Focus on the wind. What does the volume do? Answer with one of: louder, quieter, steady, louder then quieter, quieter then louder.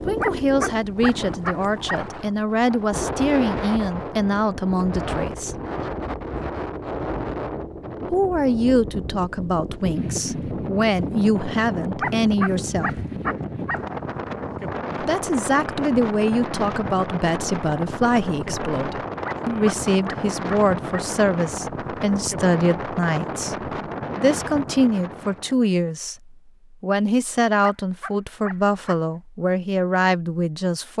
steady.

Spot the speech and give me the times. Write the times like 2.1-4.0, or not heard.
0.1-5.6, 8.1-12.9, 14.9-30.9.